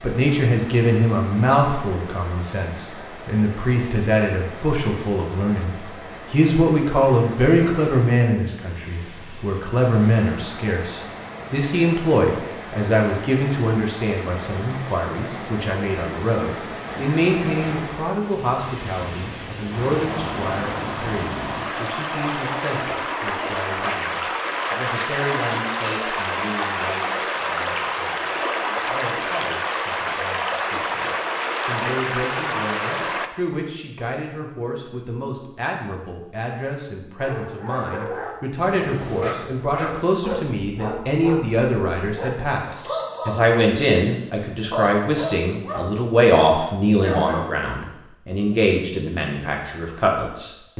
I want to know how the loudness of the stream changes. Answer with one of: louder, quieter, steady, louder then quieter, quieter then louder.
louder.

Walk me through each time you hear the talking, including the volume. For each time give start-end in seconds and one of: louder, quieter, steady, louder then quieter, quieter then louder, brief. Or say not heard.
0.0-50.7 quieter then louder.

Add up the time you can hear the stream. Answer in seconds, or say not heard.
33 s.